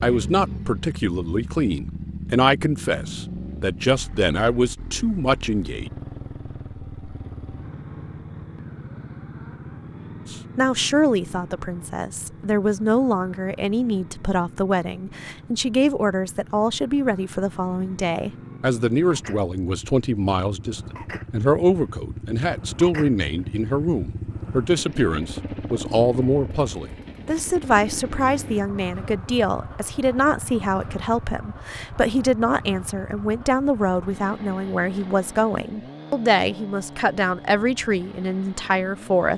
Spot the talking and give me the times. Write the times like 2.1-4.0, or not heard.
0.0-5.9, 10.3-39.3.